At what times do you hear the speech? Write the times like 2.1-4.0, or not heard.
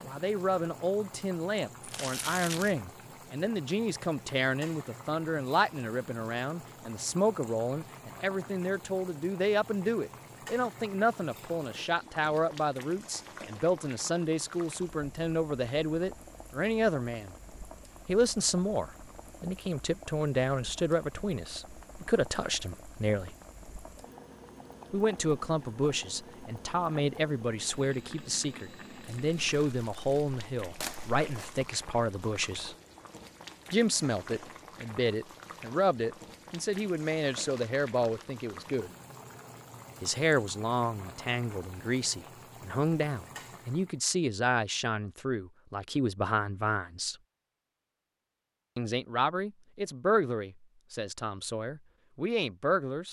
0.0-17.4, 18.1-23.4, 24.9-32.8, 33.7-38.9, 40.0-47.1, 48.8-53.0.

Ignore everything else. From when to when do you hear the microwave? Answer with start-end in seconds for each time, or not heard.
not heard.